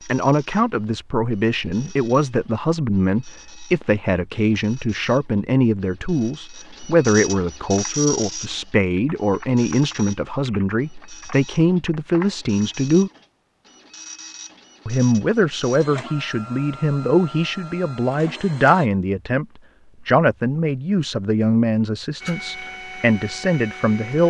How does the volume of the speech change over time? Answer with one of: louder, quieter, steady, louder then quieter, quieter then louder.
steady.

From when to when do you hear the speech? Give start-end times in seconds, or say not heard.
0.1-13.1, 14.8-24.2.